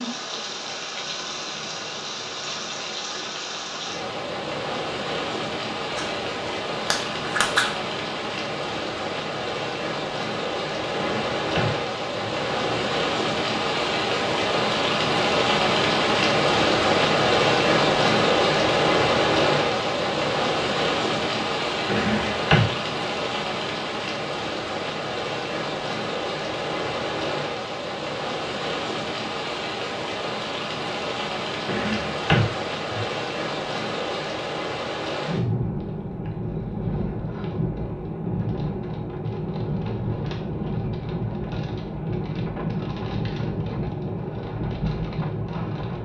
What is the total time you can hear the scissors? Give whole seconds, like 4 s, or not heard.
2 s.